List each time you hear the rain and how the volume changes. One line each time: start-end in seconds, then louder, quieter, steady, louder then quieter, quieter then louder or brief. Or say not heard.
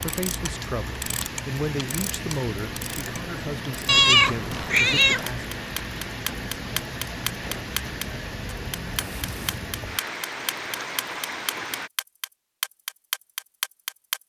0.0-11.9 steady.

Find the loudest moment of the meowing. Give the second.
4 s.